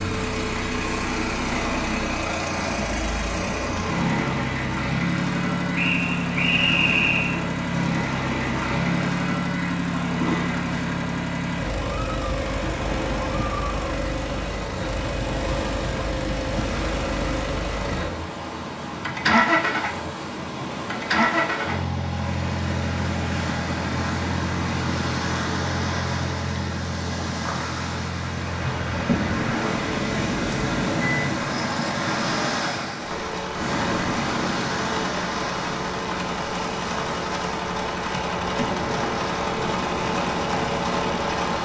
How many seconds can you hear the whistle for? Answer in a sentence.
You can hear the whistle for 2 seconds altogether.